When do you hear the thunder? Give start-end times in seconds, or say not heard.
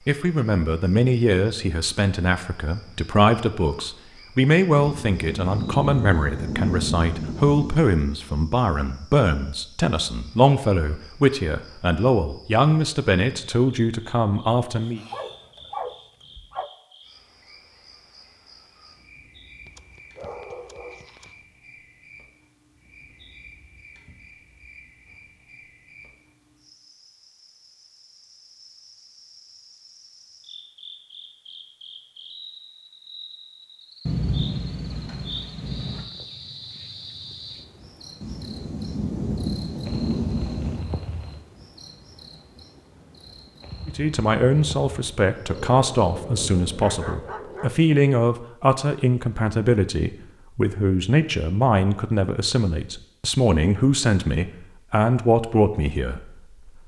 4.8-7.8, 34.0-36.0, 38.2-40.9.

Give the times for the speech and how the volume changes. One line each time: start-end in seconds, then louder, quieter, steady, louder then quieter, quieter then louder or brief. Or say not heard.
0.1-15.0 steady
43.9-56.8 steady.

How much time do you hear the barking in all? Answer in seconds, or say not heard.
6 s.